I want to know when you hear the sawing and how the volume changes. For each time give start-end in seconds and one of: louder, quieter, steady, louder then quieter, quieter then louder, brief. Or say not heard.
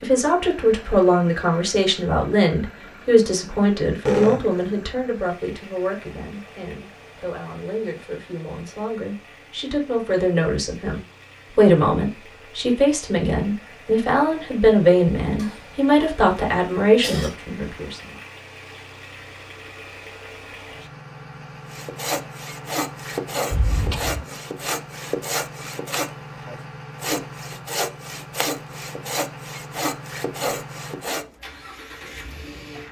21.7-31.2 steady.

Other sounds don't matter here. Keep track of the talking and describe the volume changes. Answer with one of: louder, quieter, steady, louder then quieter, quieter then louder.
quieter then louder.